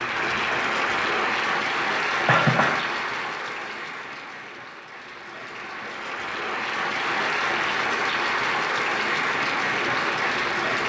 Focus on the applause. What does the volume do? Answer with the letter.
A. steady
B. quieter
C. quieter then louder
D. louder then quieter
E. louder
C.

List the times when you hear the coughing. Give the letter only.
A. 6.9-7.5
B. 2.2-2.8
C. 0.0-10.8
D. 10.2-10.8
B.